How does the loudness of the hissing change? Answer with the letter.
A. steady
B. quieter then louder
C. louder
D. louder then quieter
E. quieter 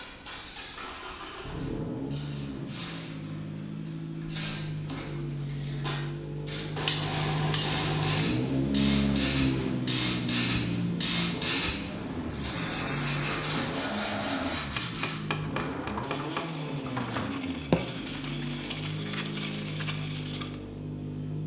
C.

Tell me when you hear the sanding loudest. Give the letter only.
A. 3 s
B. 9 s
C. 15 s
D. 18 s
D.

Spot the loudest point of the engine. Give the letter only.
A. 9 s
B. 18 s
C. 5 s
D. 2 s
A.